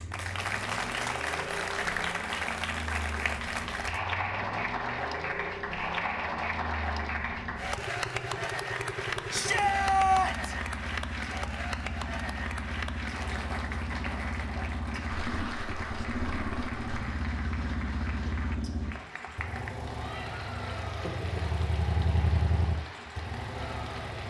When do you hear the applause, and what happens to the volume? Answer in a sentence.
You can hear the applause from 0.0 to 24.2 s, getting quieter.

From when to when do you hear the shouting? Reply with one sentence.
The shouting can be heard from 9.3 to 10.6 s.